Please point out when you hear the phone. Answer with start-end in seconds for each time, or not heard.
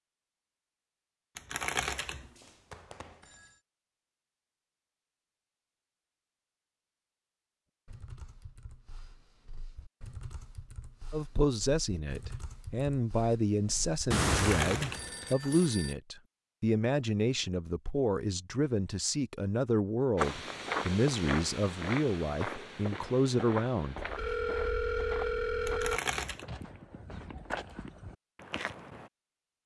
2.2-3.5, 14.1-15.9, 23.9-26.0.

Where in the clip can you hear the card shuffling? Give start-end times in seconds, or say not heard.
1.4-2.3, 14.4-15.7, 25.6-26.4.